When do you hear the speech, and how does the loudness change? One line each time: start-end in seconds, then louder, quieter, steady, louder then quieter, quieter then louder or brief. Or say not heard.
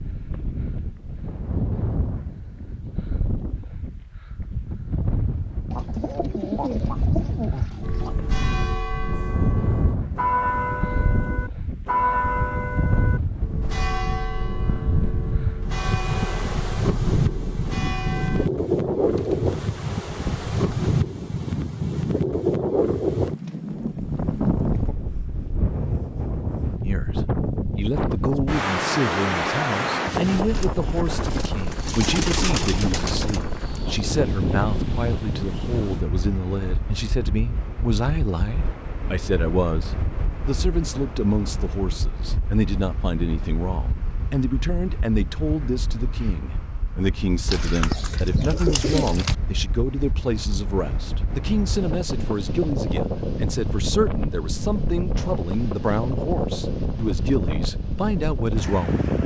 26.8-59.0 steady.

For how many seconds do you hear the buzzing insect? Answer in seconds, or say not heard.
not heard.